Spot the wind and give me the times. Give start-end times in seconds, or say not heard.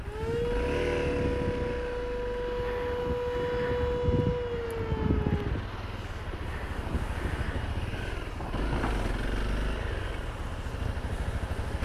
0.0-9.1.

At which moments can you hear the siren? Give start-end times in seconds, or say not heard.
0.0-5.5.